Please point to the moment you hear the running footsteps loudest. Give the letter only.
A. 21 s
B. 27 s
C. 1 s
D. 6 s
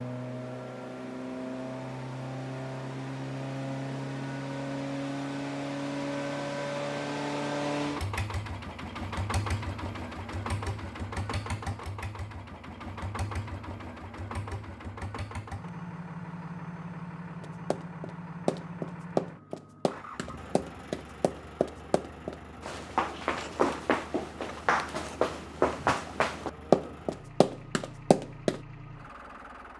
B.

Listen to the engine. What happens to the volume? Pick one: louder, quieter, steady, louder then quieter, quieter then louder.
quieter.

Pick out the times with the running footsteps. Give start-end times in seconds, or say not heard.
17.4-28.6.